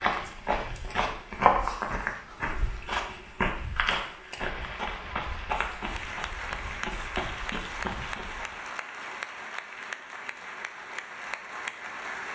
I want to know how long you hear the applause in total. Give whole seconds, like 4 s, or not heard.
8 s.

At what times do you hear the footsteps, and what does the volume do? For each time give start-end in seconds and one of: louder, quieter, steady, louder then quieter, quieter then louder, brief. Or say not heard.
0.0-8.6 quieter.